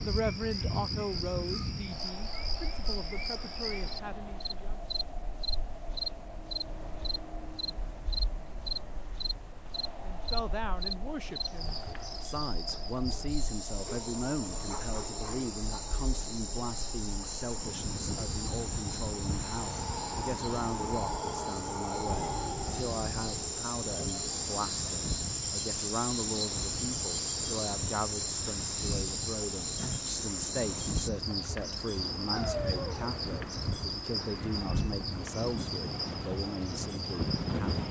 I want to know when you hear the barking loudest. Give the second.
33 s.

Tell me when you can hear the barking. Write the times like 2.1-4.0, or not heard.
13.8-15.5, 32.3-33.2.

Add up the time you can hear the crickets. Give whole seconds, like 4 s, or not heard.
38 s.